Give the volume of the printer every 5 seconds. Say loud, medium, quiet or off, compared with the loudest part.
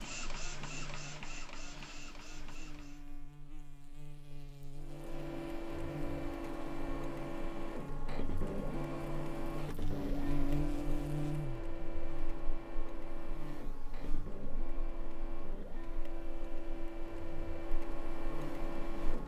medium, loud, loud, loud.